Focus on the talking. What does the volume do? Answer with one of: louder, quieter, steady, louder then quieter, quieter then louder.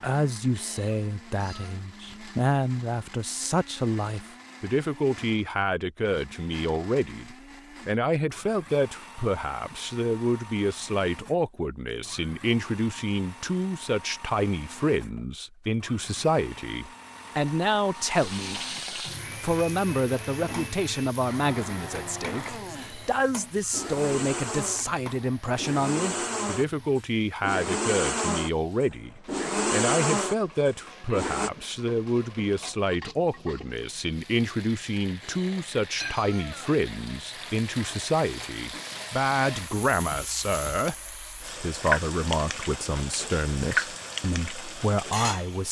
steady.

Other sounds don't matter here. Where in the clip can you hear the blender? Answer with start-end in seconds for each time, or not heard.
0.0-31.5.